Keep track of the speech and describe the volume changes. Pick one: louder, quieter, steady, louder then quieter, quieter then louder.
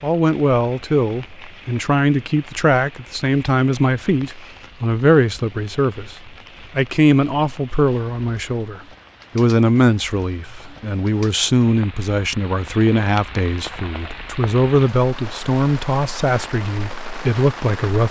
steady.